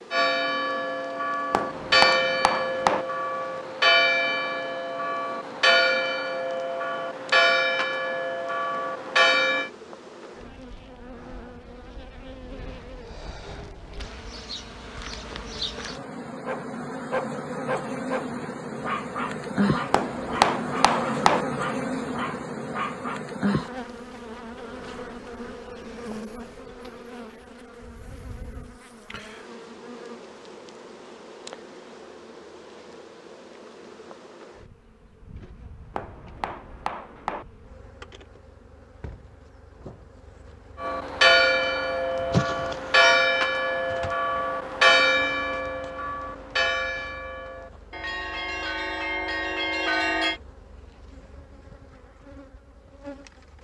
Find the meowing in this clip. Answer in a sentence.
The meowing can be heard from 42.3 to 43.2 s.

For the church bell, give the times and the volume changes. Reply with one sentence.
The church bell can be heard from 0.1 to 9.7 s, at a steady volume; and from 40.8 to 50.4 s, getting quieter.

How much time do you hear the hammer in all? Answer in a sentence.
The hammer can be heard for 5 seconds in total.